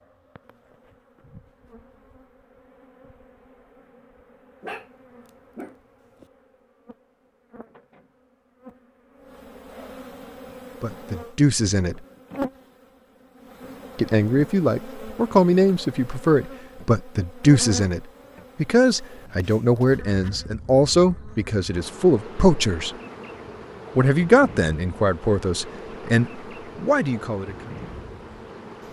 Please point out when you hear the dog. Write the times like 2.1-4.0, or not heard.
4.6-6.2.